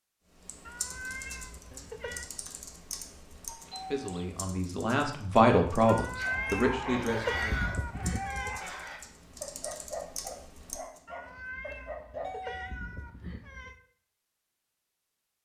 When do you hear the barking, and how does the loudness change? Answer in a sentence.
The barking can be heard from 6.2 to 12.3 s, getting quieter.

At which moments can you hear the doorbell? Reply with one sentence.
You can hear the doorbell from 3.5 to 4.4 s and from 11.7 to 12.6 s.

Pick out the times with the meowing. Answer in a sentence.
The meowing can be heard from 0.7 to 2.3 s, from 5.8 to 8.6 s and from 11.1 to 13.8 s.